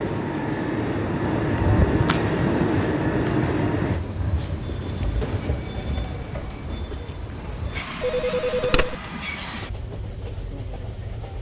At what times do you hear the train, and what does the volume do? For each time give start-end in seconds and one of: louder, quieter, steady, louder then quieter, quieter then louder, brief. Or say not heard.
0.0-11.3 quieter.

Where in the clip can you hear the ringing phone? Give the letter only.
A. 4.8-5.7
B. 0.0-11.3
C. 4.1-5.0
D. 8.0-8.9
D.